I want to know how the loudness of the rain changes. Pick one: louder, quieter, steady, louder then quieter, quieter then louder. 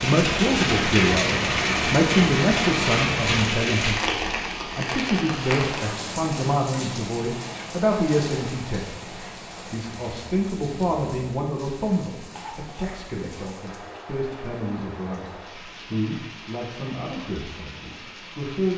quieter.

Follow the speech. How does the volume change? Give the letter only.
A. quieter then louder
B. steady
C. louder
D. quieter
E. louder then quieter
D.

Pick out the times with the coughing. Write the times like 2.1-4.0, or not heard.
12.3-12.9.